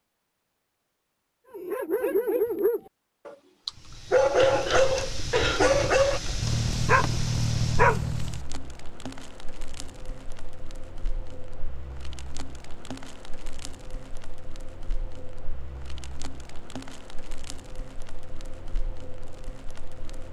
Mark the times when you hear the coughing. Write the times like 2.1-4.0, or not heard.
4.3-5.8.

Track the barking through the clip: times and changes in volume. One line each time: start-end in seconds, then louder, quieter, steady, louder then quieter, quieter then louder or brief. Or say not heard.
1.5-8.4 steady.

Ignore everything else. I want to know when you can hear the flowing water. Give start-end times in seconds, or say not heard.
not heard.